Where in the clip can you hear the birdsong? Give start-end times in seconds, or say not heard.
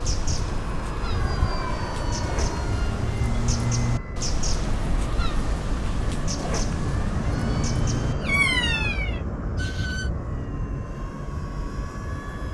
0.0-10.1.